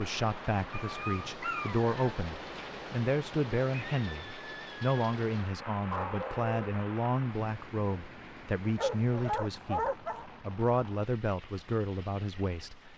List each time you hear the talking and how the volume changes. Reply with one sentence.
The talking can be heard from 0.0 to 12.9 s, at a steady volume.